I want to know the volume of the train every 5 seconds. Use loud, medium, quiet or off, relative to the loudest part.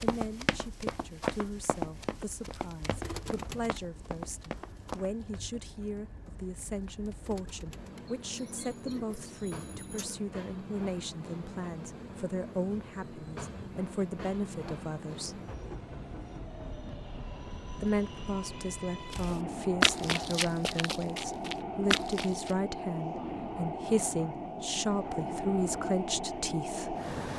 quiet, quiet, medium, medium, loud, loud.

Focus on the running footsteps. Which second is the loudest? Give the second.
20 s.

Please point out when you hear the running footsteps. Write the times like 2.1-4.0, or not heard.
0.0-5.4, 19.1-22.6.